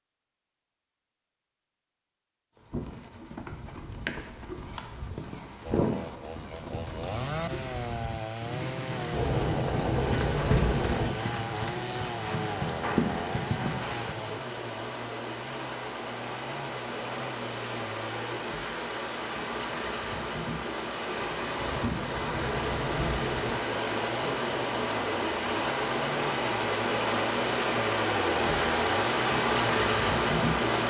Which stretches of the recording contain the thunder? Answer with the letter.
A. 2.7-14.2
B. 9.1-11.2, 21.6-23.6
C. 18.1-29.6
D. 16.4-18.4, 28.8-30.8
B.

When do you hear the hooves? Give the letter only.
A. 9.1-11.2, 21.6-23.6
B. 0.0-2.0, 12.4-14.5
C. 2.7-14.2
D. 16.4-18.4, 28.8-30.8
C.